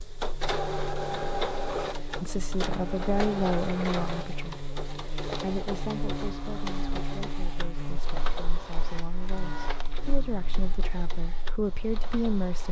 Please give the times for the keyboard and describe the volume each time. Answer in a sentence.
You can't hear the keyboard here.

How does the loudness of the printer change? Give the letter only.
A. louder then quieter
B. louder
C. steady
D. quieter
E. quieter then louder
D.